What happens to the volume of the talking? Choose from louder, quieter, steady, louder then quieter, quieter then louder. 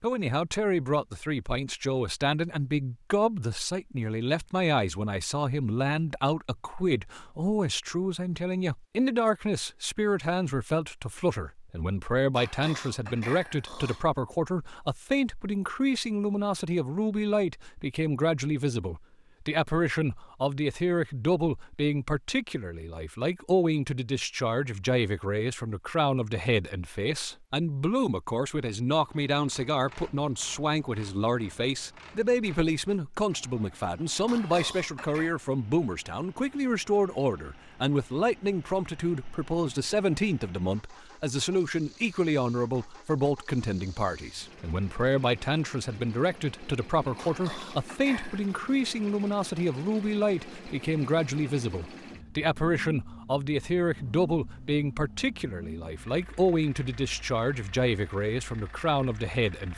steady.